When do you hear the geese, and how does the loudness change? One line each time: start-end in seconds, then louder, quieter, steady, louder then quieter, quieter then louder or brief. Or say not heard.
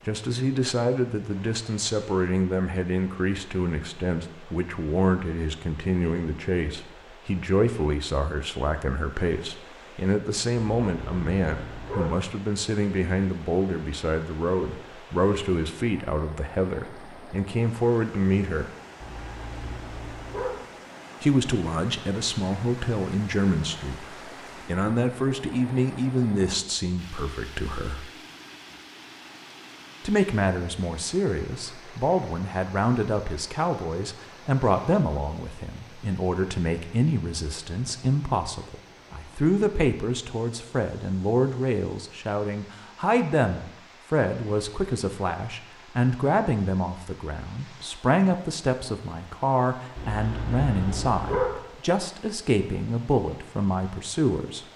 not heard.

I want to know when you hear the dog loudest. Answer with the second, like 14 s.
51 s.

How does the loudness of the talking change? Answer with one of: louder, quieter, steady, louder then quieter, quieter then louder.
steady.